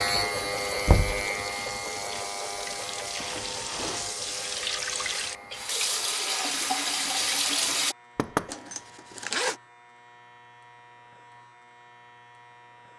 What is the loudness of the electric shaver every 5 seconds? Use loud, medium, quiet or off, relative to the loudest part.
loud, quiet, quiet.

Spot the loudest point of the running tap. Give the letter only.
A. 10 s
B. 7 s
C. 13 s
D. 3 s
B.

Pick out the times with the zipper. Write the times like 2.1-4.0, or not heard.
8.4-9.6.